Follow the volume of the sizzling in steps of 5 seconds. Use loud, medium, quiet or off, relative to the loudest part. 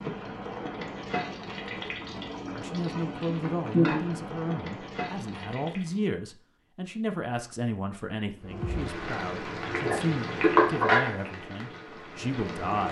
medium, medium, loud.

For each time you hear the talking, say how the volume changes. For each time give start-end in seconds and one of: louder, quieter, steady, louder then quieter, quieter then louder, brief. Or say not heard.
2.5-12.8 steady.